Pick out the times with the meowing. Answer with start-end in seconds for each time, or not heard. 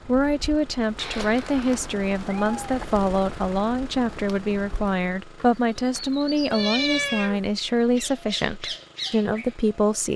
0.9-2.9, 6.5-7.5.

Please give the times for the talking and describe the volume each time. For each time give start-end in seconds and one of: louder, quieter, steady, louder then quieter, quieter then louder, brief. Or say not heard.
0.1-10.1 steady.